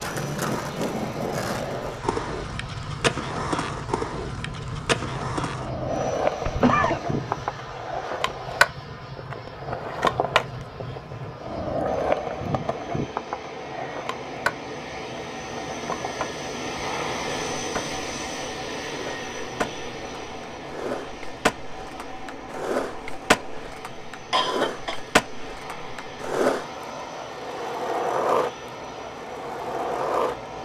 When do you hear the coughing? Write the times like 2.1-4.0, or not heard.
5.1-7.0, 24.3-24.9.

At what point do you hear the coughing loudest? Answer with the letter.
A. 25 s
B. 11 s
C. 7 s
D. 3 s
C.